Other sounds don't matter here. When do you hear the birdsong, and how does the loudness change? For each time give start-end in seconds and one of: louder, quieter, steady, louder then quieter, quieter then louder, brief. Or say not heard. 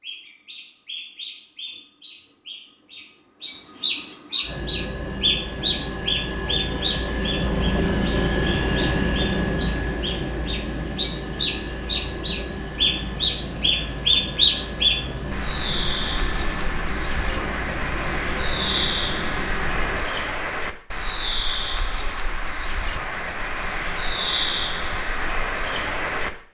0.0-26.3 louder then quieter.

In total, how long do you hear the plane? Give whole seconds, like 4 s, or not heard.
16 s.